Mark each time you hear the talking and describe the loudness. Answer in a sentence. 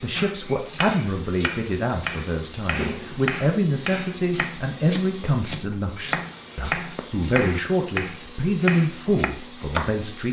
You can hear the talking from 0.0 to 10.2 s, at a steady volume.